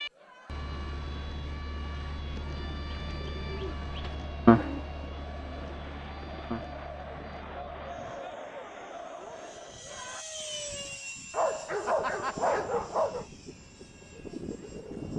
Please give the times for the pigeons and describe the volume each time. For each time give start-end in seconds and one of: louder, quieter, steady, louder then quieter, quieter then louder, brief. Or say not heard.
2.5-6.8 louder then quieter.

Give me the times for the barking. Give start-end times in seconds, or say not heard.
11.3-13.2.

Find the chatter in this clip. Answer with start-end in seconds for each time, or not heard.
0.0-10.2.